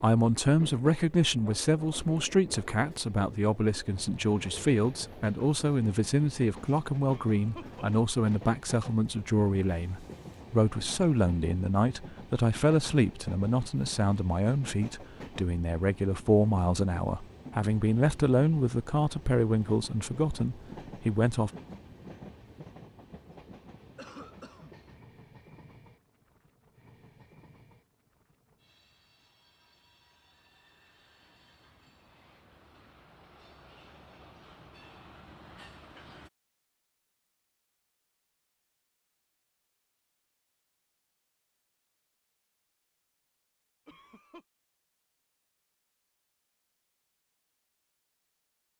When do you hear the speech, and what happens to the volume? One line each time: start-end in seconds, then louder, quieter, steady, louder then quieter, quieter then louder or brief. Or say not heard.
0.0-21.5 steady.